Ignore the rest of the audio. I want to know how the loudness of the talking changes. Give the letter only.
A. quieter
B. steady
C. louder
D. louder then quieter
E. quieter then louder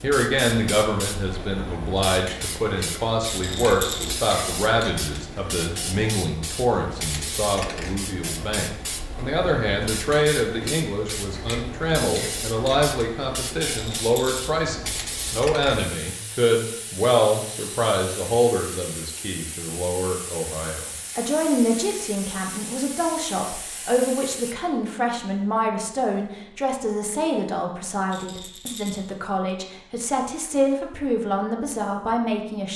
B.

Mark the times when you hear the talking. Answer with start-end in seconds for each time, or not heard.
0.0-32.7.